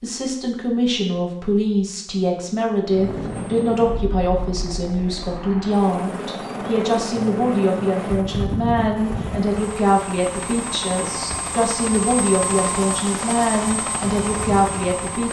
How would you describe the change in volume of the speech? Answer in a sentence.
The loudness of the speech stays about the same.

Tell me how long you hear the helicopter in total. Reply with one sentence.
The helicopter can be heard for 12 seconds in total.